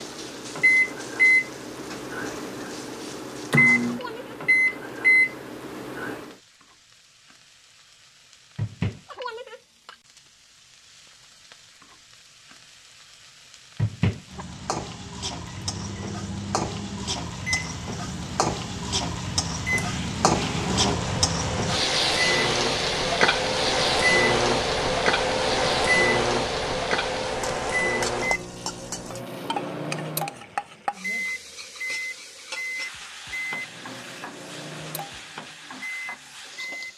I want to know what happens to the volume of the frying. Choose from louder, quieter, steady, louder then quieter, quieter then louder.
louder then quieter.